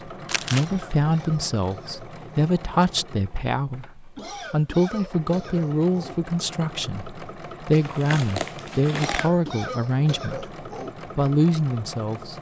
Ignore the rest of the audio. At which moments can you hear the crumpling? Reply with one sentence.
The crumpling can be heard from 0.2 to 0.7 s and from 7.7 to 9.3 s.